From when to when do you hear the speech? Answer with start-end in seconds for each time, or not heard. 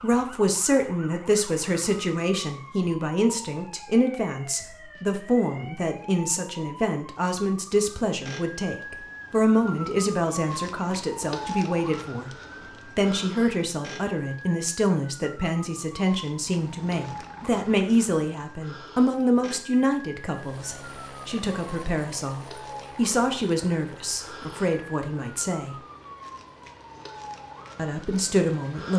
0.0-12.3, 12.9-25.8, 27.8-28.9.